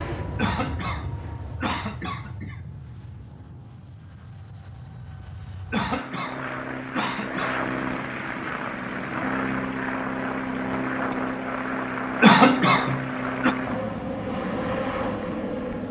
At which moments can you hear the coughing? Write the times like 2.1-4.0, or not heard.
0.3-2.7, 5.7-7.5, 12.2-13.6.